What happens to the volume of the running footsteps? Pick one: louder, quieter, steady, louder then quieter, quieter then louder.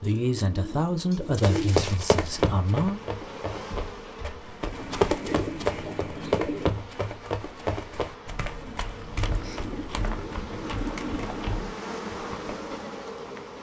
quieter.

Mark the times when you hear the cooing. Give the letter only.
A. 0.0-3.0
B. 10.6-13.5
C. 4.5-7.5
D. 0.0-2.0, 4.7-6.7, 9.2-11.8
D.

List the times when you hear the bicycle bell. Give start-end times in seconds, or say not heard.
not heard.